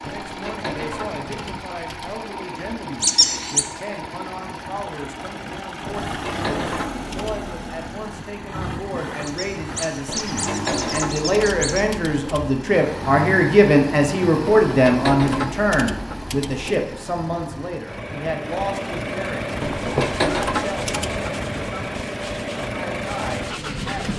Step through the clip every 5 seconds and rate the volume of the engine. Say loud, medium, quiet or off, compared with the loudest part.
medium, loud, loud, loud, loud.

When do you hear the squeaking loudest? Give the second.
3 s.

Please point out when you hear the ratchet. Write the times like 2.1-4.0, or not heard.
0.1-2.3, 5.8-7.5, 10.1-12.6, 14.4-16.8, 19.6-21.3.